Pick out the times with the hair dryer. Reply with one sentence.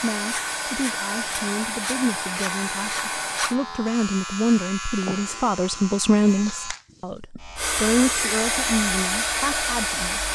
You can hear the hair dryer from 0.0 to 3.6 s and from 7.5 to 10.3 s.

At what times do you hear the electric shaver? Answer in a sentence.
You can hear the electric shaver from 0.0 to 10.3 s.